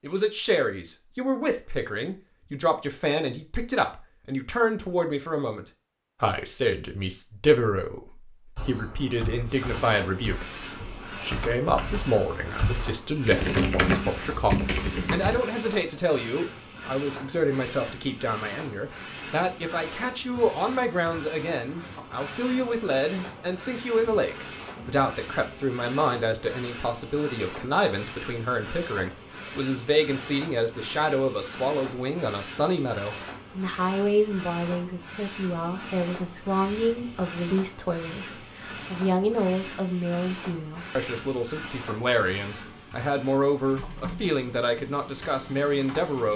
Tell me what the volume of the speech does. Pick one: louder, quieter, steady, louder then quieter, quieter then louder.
steady.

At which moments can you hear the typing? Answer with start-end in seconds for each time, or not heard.
8.6-15.4.